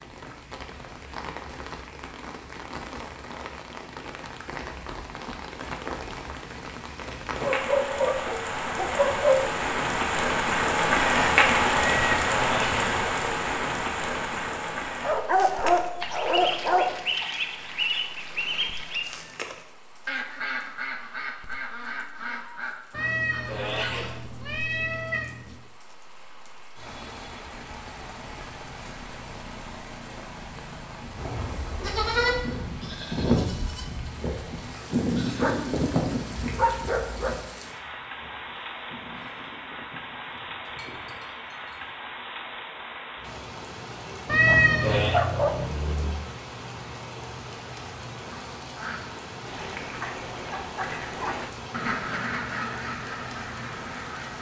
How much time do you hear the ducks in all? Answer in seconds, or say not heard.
15 s.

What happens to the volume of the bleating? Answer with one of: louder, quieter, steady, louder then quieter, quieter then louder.
quieter.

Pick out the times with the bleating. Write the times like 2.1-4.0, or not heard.
31.1-42.0.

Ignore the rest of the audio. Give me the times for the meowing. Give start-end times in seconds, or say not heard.
11.8-13.1, 22.9-25.6, 44.2-45.2.